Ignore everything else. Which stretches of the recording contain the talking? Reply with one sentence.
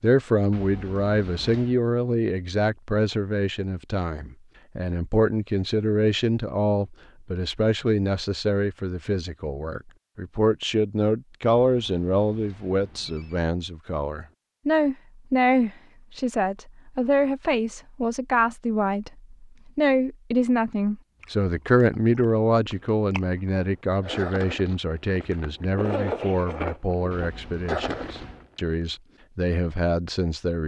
The talking can be heard from 0.0 to 30.6 s.